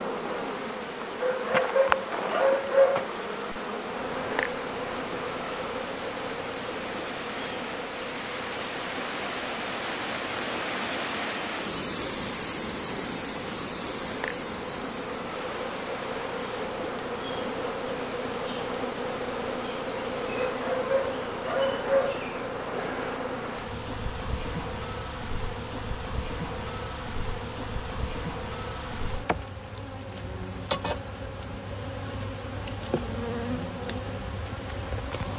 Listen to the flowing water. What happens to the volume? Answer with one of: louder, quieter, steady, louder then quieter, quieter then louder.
louder then quieter.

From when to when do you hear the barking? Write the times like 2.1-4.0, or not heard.
1.2-3.1, 20.4-22.2.